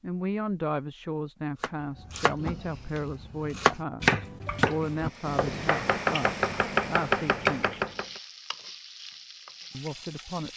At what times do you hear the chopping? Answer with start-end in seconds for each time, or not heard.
1.6-8.2.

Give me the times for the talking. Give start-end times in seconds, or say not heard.
0.0-7.8, 9.7-10.5.